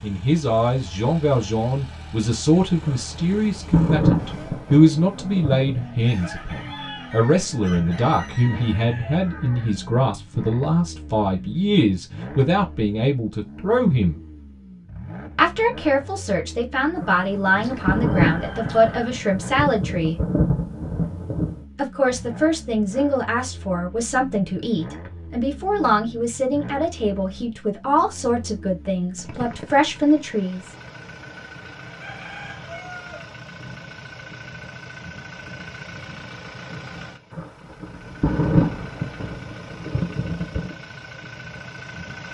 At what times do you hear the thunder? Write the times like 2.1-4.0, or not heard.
2.8-5.8, 16.9-21.6, 37.3-40.8.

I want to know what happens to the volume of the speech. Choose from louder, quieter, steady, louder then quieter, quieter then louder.
steady.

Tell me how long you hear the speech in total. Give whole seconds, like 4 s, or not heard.
28 s.